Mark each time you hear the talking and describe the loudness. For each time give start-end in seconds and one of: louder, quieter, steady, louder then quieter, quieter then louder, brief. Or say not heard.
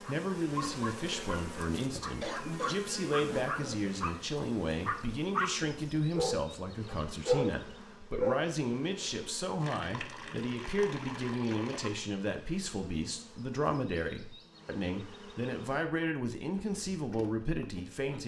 0.0-18.2 steady.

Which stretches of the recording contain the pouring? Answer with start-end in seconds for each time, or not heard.
9.6-12.1.